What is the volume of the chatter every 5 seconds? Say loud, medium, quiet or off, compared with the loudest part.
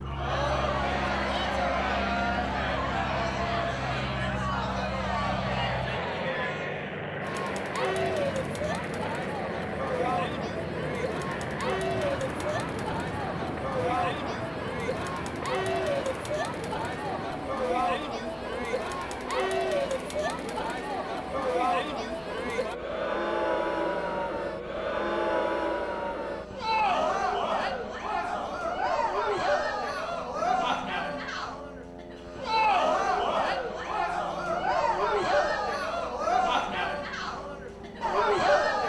loud, medium, medium, loud, loud, loud, loud, loud.